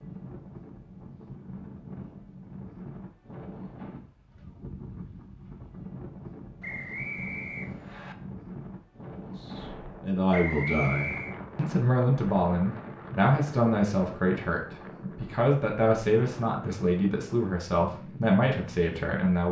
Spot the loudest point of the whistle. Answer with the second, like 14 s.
11 s.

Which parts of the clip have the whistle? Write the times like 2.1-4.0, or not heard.
6.6-8.2, 10.3-11.3.